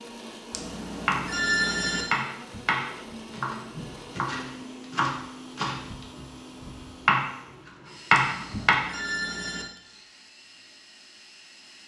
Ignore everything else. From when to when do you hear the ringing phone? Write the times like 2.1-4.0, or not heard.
0.5-2.0, 8.1-9.7.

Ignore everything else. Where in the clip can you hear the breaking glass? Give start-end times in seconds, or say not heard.
not heard.